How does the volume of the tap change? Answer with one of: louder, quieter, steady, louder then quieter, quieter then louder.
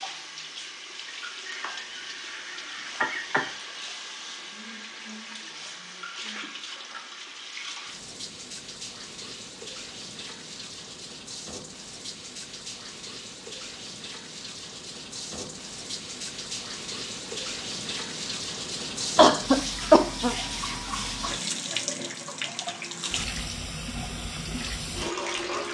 louder.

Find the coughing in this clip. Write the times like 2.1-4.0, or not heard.
1.6-3.5, 19.1-20.4.